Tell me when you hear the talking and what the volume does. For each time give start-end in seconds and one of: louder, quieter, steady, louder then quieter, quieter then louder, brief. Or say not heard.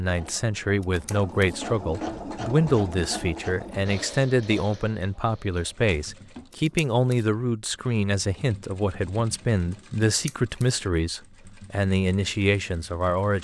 0.0-13.3 steady.